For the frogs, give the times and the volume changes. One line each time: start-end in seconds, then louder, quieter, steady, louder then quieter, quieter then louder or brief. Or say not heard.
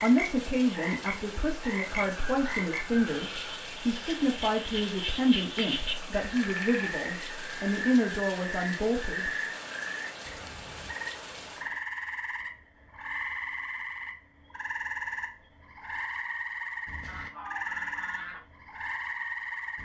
0.0-19.8 steady.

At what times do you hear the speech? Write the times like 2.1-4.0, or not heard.
0.0-9.3.